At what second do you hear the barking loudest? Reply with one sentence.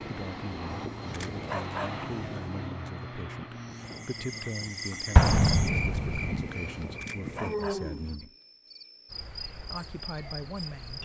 The loudest moment of the barking is at 2 seconds.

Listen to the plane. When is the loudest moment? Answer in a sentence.
The loudest moment of the plane is at 2 seconds.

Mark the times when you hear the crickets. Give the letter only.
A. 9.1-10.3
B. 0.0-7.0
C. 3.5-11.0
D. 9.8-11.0
C.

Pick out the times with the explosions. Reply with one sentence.
You can hear the explosions from 5.2 to 6.4 s.